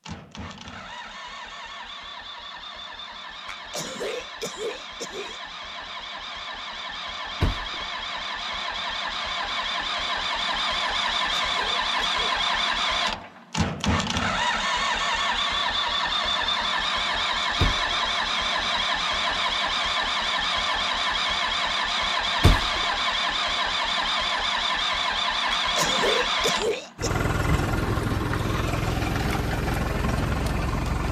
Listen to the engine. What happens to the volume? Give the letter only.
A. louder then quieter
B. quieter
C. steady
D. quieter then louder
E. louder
E.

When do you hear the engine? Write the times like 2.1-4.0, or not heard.
0.0-31.0.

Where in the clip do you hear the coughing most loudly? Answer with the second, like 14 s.
26 s.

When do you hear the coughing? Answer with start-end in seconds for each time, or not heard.
3.5-5.4, 11.3-12.2, 25.5-27.2.